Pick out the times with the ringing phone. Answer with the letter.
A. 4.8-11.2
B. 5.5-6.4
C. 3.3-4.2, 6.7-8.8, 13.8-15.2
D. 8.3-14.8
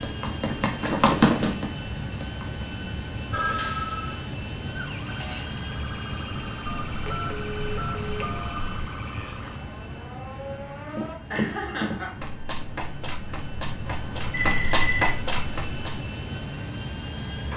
C.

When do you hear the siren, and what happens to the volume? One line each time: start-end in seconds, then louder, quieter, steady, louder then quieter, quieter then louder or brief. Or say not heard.
4.8-11.2 steady.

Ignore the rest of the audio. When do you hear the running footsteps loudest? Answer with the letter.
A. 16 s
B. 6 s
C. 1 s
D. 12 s
C.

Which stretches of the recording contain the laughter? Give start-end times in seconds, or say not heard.
11.3-12.2.